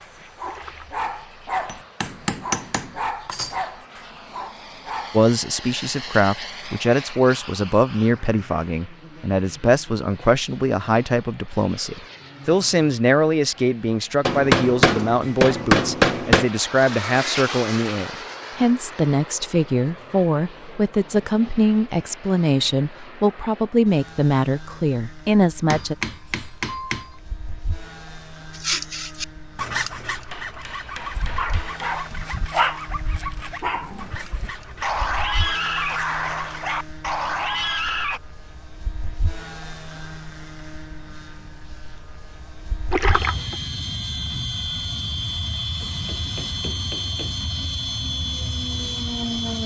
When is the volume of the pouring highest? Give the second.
43 s.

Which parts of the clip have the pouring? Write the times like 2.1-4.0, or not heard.
0.4-1.1, 42.9-43.5.